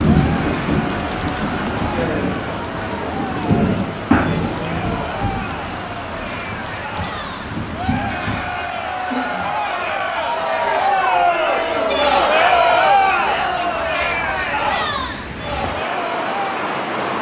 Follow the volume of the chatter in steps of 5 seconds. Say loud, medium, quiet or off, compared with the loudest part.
quiet, medium, loud, medium.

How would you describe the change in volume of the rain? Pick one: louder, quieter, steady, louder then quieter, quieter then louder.
quieter then louder.